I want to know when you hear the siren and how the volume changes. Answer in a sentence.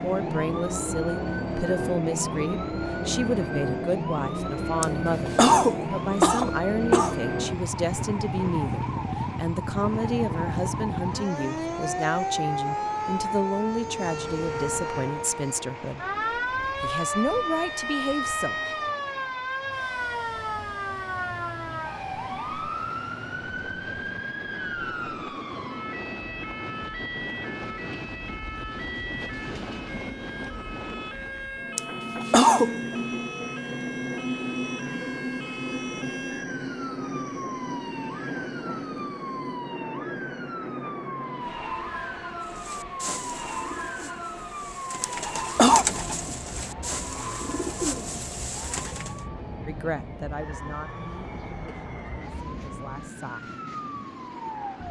The siren can be heard from 0.0 to 54.8 s, getting quieter.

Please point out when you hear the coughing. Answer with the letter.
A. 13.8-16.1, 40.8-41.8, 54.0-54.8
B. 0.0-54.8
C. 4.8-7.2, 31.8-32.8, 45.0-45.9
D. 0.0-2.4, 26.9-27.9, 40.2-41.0
C.